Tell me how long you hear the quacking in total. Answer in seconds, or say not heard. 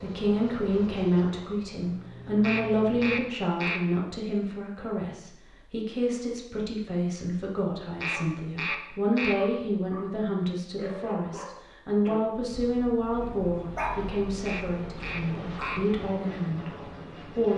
4 s.